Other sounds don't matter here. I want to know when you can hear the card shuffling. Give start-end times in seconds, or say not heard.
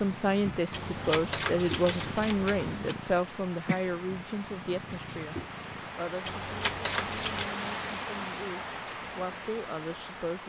0.7-3.0, 6.2-7.5.